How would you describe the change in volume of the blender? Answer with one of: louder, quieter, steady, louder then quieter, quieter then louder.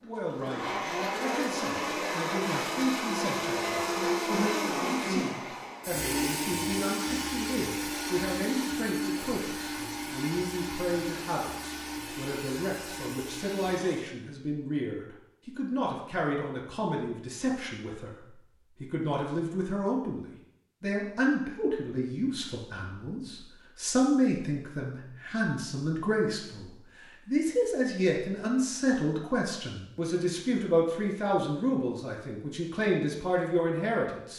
quieter.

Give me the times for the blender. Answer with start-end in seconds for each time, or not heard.
0.0-14.1.